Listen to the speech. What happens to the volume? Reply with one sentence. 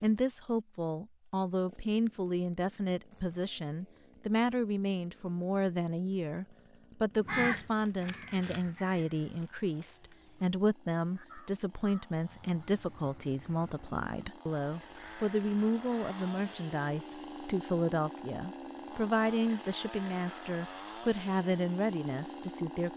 The loudness of the speech stays about the same.